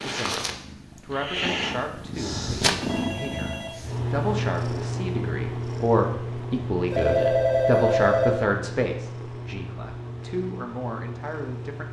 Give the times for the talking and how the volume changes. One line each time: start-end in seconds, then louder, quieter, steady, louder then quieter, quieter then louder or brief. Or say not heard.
0.0-11.8 louder then quieter.